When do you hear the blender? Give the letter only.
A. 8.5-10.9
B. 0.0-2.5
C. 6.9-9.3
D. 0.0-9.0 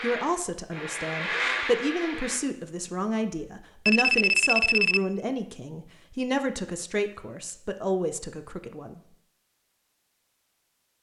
B.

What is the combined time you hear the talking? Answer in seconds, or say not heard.
9 s.